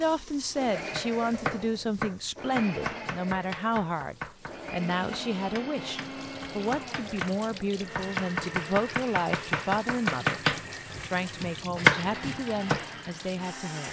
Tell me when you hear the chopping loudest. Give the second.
12 s.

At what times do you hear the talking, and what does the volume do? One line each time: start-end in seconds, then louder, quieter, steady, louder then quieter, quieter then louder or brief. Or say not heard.
0.0-10.4 steady
11.1-13.8 brief.